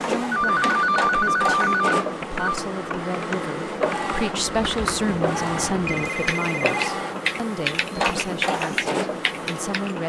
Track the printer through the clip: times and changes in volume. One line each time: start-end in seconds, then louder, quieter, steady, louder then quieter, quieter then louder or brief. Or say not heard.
0.0-10.0 steady.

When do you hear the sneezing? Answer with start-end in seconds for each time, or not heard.
not heard.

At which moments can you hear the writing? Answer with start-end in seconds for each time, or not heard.
not heard.